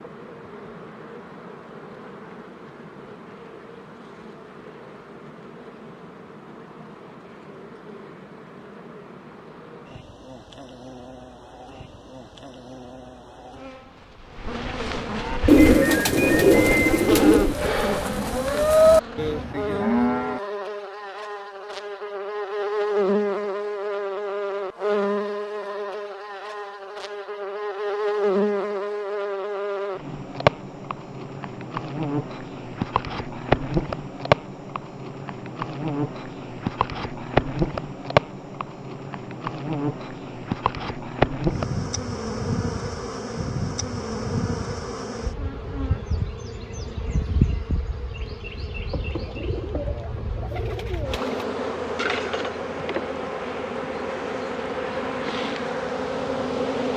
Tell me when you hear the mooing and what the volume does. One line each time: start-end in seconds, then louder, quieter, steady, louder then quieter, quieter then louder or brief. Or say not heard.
15.2-20.4 louder then quieter.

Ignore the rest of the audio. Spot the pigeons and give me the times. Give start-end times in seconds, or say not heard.
15.4-17.6, 49.2-51.5.